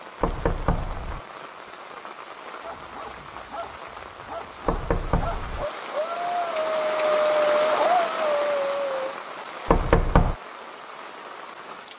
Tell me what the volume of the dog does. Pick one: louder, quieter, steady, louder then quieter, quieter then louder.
louder.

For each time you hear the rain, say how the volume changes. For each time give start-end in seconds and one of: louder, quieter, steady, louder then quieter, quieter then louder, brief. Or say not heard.
0.0-11.9 louder then quieter.